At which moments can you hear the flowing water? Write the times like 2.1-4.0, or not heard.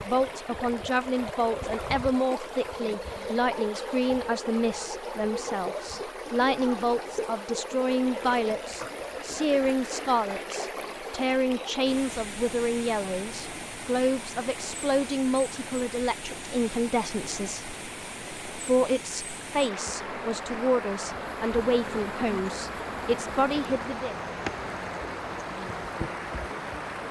0.0-27.0.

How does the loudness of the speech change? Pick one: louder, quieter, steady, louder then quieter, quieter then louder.
steady.